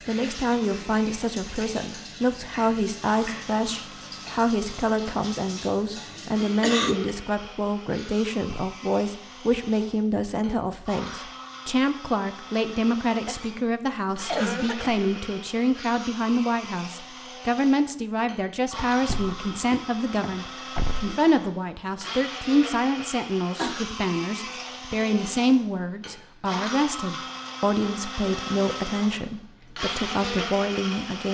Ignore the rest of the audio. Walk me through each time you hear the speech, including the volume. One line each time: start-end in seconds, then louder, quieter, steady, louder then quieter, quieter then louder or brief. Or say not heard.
0.1-31.3 steady.